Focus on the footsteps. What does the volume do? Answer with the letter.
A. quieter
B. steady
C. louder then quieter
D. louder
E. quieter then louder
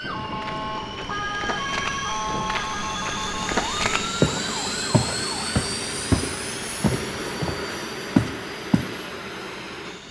D.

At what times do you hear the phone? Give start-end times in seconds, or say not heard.
not heard.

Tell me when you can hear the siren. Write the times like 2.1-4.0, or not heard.
0.0-5.5.